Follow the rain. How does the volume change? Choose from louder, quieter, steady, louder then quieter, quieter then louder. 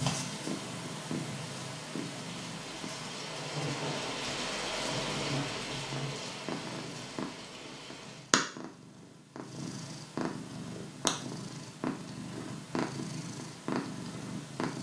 louder then quieter.